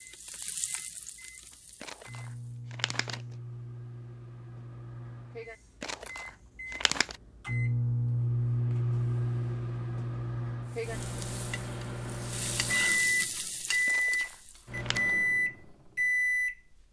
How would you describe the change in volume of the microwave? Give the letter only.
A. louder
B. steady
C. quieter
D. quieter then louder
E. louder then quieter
A.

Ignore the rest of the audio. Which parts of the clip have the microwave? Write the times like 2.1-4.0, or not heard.
0.0-16.8.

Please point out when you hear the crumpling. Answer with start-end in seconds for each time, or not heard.
1.8-3.2, 5.8-7.2, 13.8-15.1.